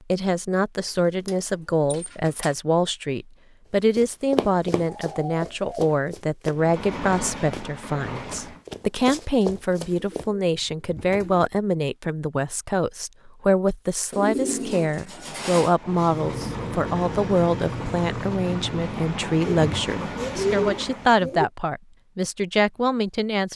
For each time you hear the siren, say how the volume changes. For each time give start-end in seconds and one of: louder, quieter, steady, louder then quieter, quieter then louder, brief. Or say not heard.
not heard.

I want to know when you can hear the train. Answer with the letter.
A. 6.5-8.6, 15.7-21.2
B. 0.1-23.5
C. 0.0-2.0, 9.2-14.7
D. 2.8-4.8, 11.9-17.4
A.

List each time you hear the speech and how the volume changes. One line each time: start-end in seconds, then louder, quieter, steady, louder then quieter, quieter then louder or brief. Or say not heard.
0.1-23.5 steady.